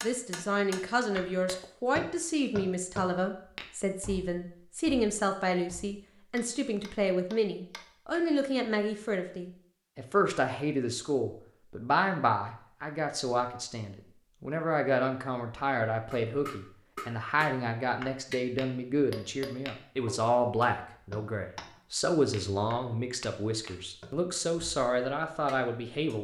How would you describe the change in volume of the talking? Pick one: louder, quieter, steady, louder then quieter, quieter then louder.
steady.